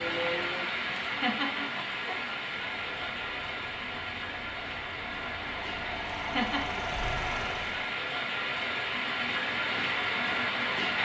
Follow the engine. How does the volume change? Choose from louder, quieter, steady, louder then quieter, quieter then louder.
louder.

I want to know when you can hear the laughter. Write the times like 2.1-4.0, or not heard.
1.0-2.2, 6.2-6.8.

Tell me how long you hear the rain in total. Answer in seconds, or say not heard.
11 s.